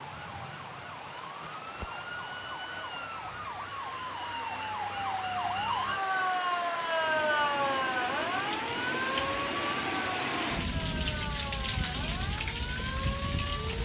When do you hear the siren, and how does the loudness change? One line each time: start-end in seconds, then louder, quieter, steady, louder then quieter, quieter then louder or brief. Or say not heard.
0.0-13.8 louder then quieter.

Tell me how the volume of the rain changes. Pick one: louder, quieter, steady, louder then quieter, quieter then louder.
louder.